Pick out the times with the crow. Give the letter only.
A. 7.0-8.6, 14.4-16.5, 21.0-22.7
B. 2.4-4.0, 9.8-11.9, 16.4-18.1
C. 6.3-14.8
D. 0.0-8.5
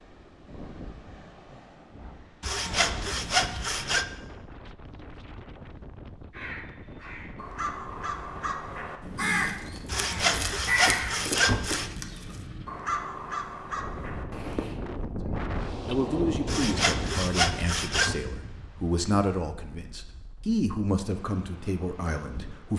C.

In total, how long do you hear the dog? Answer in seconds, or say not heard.
not heard.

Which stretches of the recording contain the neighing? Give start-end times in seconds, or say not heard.
not heard.